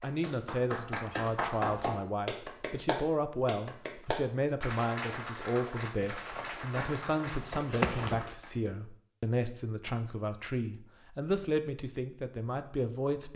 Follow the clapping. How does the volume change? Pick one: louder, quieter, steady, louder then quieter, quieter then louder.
quieter.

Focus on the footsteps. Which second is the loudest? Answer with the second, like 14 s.
8 s.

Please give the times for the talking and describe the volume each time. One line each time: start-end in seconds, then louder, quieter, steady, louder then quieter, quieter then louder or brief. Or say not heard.
0.0-13.3 steady.